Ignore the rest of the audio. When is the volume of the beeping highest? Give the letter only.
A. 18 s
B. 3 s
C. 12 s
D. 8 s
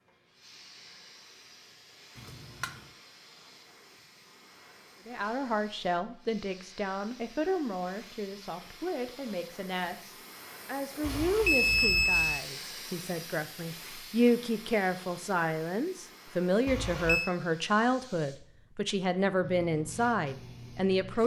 C.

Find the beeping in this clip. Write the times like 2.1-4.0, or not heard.
2.1-2.8, 11.0-12.4, 16.6-17.3.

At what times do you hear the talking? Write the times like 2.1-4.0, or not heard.
5.0-21.2.